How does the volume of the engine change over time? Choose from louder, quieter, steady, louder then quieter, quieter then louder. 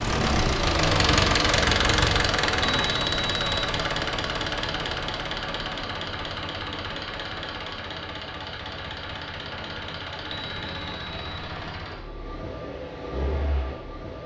quieter.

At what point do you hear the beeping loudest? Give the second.
3 s.